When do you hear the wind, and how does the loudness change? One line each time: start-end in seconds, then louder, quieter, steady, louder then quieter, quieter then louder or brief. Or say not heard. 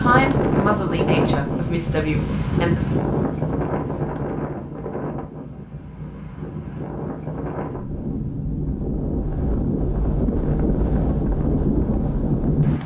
0.0-12.8 quieter then louder.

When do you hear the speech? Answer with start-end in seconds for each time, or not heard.
0.0-2.9.